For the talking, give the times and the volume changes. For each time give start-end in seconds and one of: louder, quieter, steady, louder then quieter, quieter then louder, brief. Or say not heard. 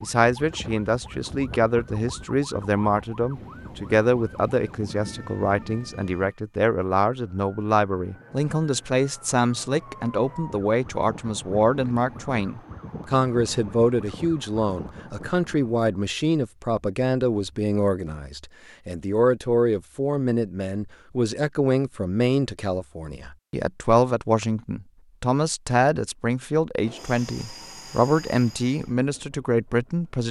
0.0-30.2 steady.